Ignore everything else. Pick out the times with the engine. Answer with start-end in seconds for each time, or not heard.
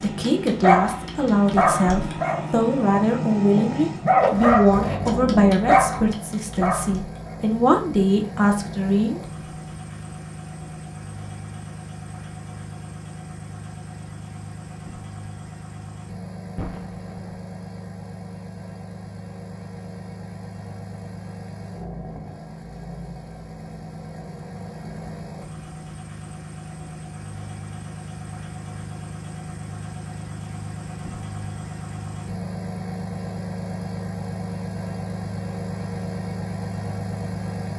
0.0-37.7.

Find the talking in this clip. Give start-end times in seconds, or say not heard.
0.0-9.2.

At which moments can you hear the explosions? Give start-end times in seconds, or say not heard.
16.6-17.4.